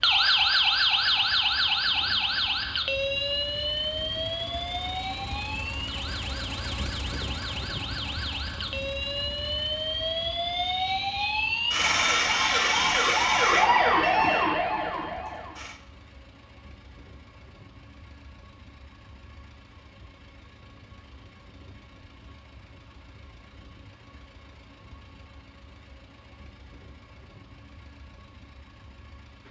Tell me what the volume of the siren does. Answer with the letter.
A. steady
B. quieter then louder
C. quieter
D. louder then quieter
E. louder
B.